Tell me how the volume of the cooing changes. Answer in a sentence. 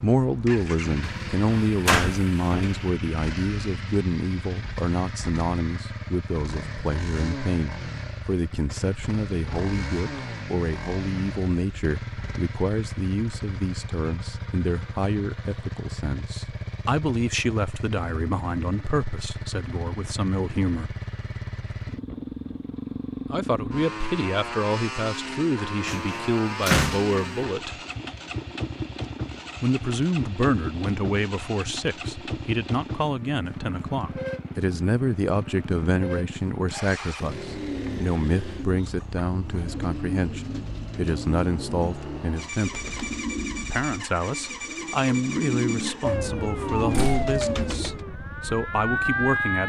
The loudness of the cooing goes up.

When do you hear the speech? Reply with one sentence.
You can hear the speech from 0.0 to 20.9 s, from 23.3 to 27.8 s, from 29.6 to 42.8 s and from 43.6 to 49.6 s.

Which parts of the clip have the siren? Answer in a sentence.
The siren can be heard from 46.0 to 49.6 s.